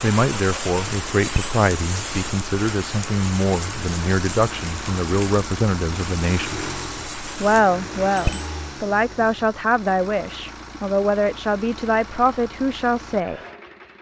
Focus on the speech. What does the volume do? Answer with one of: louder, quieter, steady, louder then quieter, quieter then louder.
steady.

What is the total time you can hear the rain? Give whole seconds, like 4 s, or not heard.
8 s.